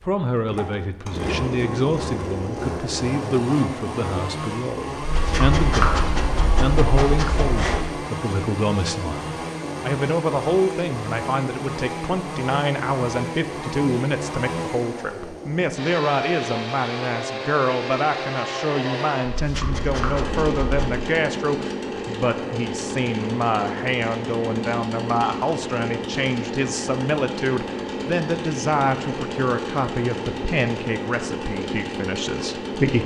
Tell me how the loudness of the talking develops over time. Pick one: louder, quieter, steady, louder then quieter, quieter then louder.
steady.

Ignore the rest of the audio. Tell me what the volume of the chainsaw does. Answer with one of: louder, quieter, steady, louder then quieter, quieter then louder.
steady.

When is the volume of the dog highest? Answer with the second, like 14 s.
6 s.